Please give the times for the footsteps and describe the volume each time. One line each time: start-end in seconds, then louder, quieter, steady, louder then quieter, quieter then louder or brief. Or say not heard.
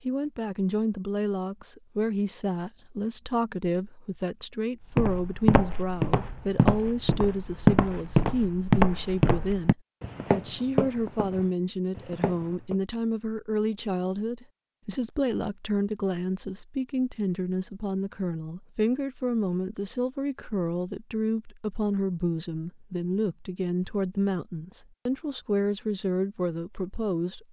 5.0-12.8 quieter.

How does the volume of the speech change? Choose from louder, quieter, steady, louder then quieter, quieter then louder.
steady.